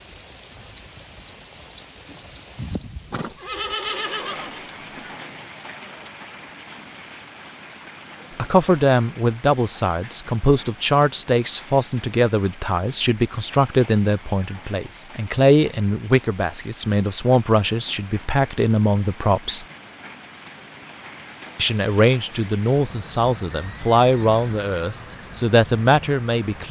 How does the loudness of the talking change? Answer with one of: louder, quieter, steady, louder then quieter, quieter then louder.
steady.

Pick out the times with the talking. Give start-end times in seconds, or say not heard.
8.3-19.6, 21.6-26.6.